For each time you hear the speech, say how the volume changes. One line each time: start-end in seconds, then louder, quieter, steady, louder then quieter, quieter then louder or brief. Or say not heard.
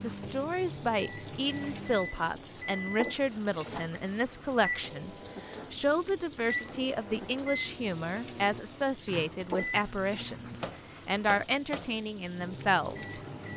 0.0-13.5 steady.